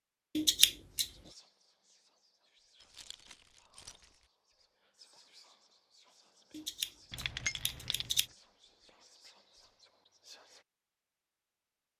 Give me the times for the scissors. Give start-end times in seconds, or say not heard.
0.3-1.1, 6.5-8.2.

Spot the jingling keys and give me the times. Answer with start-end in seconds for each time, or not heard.
2.8-4.2, 7.1-8.2.